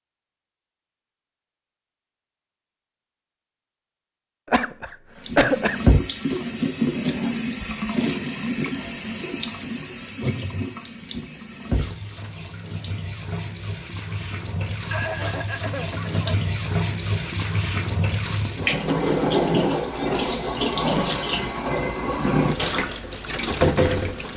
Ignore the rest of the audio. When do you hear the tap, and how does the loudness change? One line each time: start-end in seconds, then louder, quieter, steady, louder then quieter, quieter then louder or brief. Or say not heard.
5.2-24.3 quieter then louder.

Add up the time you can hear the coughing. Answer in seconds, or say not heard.
3 s.